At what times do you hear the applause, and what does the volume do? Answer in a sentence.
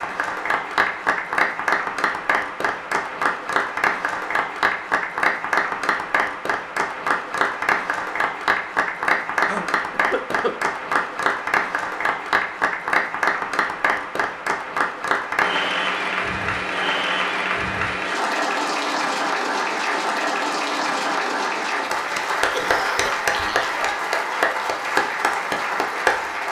The applause can be heard from 0.0 to 26.4 s, at a steady volume.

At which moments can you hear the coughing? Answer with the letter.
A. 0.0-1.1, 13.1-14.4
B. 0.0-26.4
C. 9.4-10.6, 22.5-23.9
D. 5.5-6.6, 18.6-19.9
C.